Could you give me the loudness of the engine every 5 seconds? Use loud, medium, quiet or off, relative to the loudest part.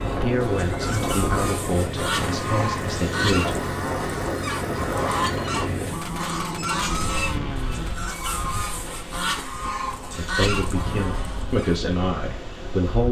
loud, loud, medium.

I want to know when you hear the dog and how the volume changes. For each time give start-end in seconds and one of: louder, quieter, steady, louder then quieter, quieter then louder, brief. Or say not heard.
not heard.